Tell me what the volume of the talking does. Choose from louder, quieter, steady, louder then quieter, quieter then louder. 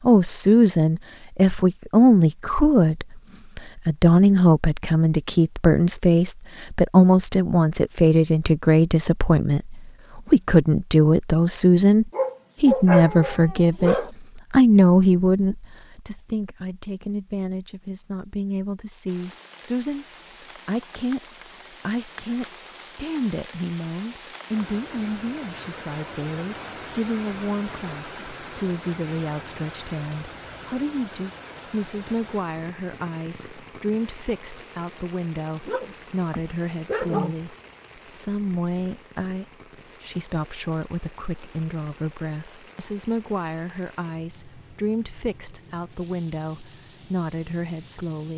quieter.